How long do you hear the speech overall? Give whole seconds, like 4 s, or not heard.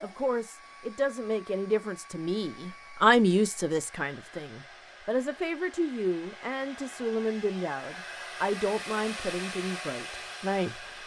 11 s.